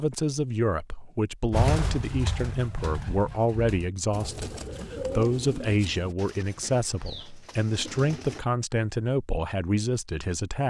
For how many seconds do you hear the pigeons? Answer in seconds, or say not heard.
7 s.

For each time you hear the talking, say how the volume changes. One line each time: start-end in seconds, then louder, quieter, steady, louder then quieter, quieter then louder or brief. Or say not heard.
0.0-10.6 steady.